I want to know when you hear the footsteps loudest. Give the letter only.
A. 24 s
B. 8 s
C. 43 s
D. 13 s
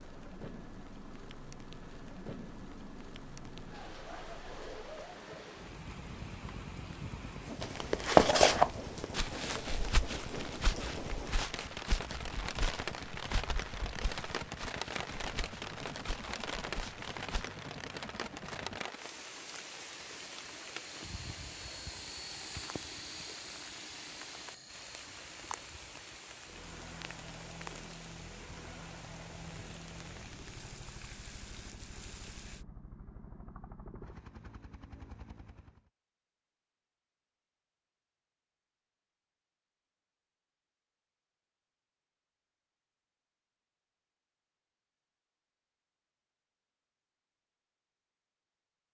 B.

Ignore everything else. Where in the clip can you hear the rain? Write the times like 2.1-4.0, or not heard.
0.0-32.6.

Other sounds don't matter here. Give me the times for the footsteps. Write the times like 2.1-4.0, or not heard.
7.6-17.4.